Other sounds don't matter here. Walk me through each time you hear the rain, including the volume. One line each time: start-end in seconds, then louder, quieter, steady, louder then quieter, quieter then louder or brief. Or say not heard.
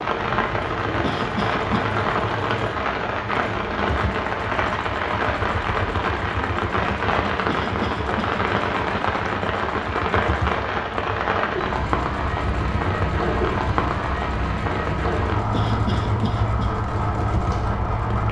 0.0-18.2 steady.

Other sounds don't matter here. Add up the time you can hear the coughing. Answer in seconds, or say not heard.
4 s.